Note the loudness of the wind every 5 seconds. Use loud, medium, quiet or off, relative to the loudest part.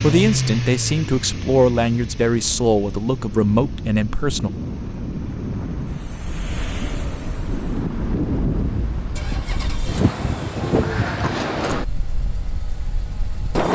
medium, loud, loud.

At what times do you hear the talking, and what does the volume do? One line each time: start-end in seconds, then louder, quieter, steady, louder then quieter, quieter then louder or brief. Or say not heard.
0.0-4.5 steady.